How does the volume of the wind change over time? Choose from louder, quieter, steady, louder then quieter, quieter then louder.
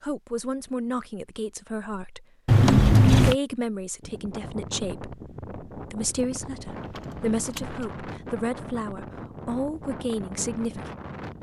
steady.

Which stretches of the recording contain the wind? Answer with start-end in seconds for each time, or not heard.
4.0-11.3.